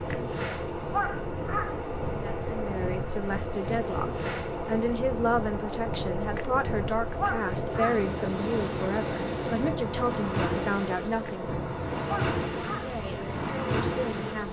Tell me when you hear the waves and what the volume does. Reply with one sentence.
You can hear the waves from 0.0 to 14.4 s, at a steady volume.